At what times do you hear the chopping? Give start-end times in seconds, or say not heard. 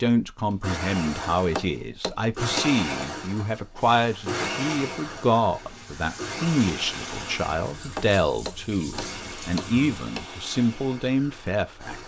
1.6-2.8, 8.0-10.2.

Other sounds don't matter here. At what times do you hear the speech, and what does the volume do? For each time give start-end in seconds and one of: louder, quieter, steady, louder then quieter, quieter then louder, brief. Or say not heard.
0.0-11.9 steady.